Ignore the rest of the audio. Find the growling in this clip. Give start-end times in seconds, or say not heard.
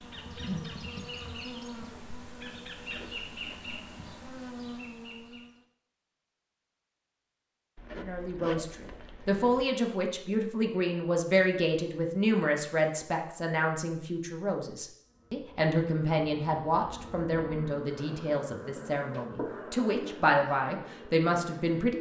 not heard.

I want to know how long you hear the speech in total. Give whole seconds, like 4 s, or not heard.
14 s.